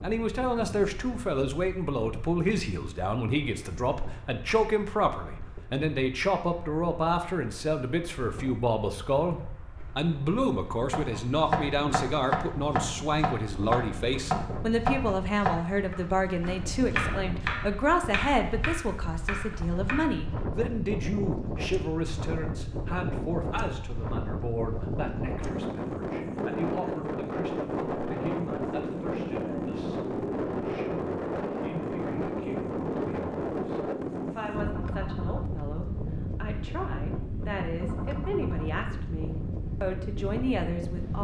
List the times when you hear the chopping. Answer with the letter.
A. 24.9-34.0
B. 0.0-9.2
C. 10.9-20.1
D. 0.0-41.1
C.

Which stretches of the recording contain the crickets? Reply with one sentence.
The crickets can't be heard in this clip.